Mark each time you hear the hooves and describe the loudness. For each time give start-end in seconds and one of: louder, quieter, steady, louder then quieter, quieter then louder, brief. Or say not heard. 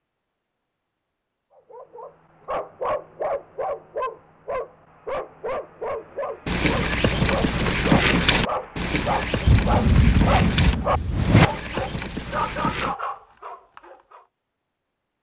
6.5-12.9 quieter.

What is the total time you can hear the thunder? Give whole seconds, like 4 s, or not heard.
2 s.